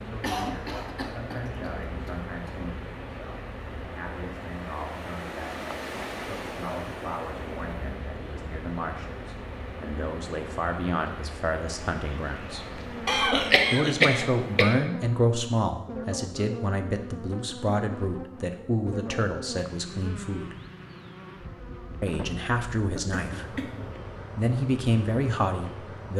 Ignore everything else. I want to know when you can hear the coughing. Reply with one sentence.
You can hear the coughing from 0.2 to 2.5 s, from 13.1 to 14.8 s and from 22.9 to 23.9 s.